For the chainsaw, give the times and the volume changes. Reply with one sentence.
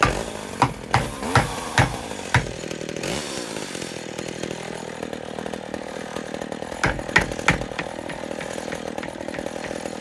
The chainsaw can be heard from 0.0 to 9.9 s, at a steady volume.